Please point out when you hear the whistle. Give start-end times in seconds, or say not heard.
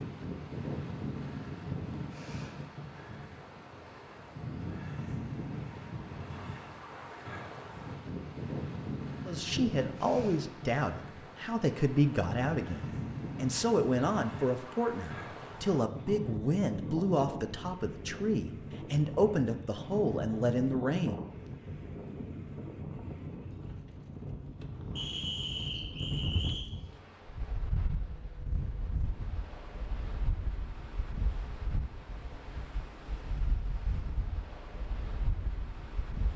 24.9-26.6.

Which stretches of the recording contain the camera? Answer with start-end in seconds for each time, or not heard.
not heard.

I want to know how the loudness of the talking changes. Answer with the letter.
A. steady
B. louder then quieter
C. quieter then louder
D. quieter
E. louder
A.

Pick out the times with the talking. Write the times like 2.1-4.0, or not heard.
9.2-21.2.